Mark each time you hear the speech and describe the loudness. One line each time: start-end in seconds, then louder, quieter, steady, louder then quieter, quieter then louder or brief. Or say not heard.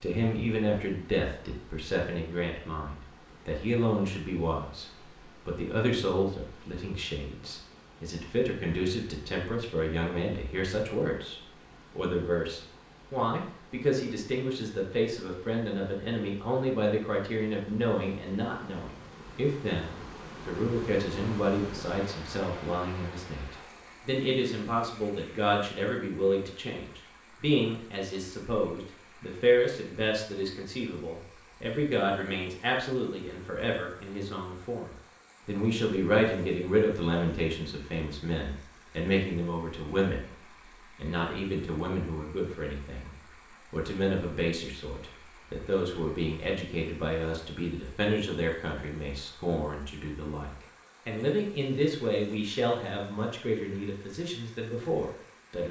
0.0-40.2 steady
41.0-55.6 steady.